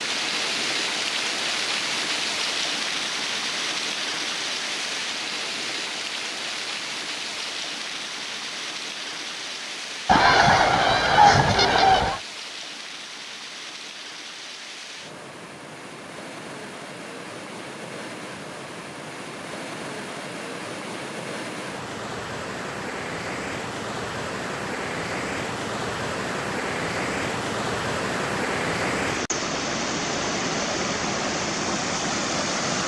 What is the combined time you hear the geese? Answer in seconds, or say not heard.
2 s.